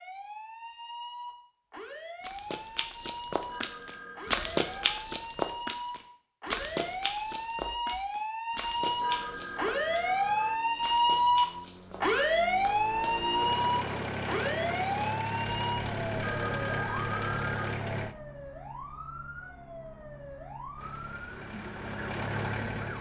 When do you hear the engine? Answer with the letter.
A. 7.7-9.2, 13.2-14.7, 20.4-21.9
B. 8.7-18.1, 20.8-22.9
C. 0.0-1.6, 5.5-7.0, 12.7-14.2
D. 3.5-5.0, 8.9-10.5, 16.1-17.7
B.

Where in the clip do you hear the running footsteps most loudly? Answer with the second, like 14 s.
4 s.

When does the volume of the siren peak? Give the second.
11 s.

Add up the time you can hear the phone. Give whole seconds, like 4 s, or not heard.
5 s.